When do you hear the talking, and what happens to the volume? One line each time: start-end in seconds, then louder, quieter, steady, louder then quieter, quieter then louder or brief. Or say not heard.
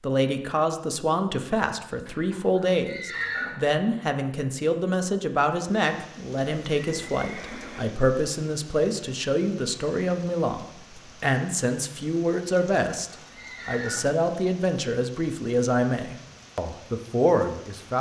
0.0-17.9 steady.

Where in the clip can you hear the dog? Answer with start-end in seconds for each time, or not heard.
not heard.